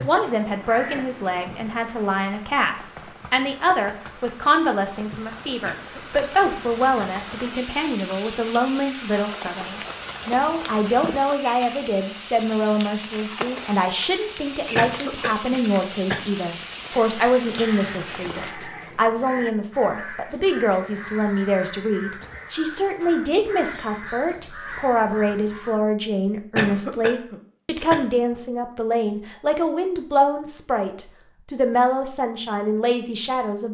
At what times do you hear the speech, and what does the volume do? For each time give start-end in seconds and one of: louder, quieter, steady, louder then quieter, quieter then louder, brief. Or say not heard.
0.0-33.7 steady.